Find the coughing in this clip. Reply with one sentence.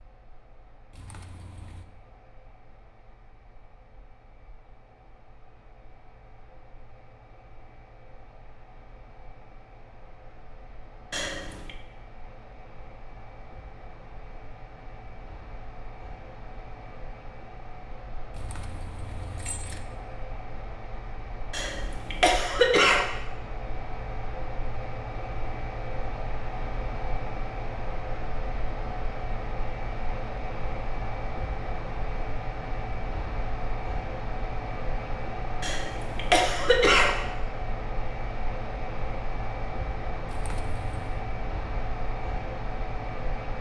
The coughing can be heard from 11.1 to 11.8 s, from 21.5 to 23.1 s and from 35.6 to 37.2 s.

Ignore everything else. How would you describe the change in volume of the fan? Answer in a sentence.
The loudness of the fan goes up.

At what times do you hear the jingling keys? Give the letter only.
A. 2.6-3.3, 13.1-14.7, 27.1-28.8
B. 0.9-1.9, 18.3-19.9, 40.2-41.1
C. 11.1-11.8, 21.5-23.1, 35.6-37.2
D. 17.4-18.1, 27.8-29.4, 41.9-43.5
B.